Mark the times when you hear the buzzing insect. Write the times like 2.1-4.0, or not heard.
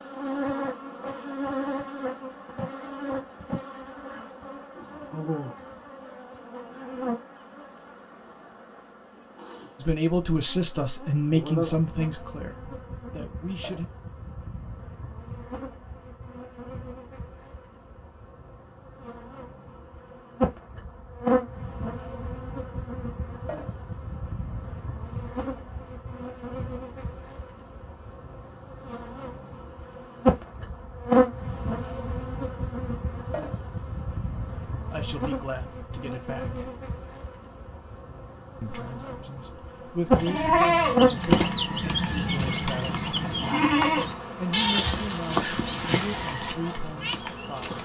0.0-47.7.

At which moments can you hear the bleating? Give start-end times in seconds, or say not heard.
40.1-47.1.